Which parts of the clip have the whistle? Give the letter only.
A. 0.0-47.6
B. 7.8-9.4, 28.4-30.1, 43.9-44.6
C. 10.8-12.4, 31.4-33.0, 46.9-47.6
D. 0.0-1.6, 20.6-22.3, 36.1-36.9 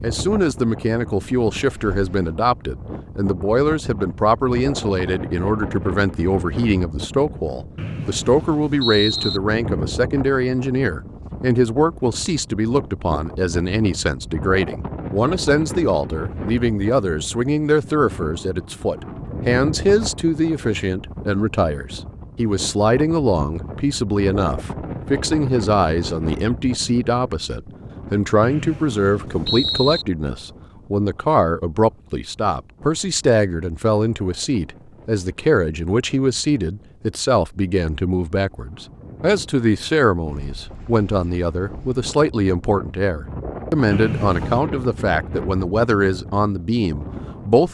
B.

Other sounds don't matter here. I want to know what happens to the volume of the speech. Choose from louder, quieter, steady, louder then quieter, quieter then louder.
steady.